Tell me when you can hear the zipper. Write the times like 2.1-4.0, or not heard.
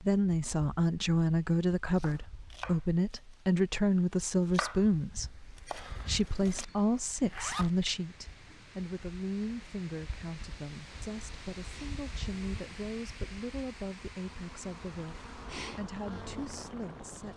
7.2-7.8.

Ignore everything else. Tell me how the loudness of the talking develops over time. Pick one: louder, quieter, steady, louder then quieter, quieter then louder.
quieter.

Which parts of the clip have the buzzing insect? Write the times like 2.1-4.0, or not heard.
10.9-17.3.